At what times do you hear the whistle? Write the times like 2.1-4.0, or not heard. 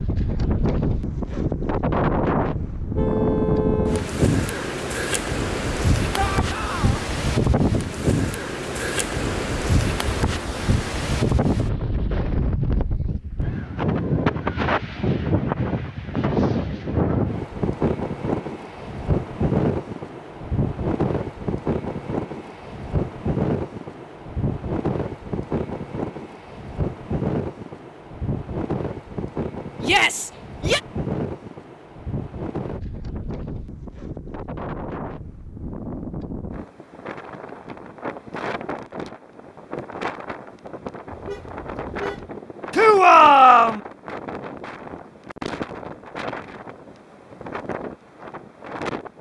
not heard.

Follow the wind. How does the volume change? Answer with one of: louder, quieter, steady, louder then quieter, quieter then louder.
quieter.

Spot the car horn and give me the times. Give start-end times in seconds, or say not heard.
3.0-4.1, 41.1-42.3.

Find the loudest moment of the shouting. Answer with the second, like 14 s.
43 s.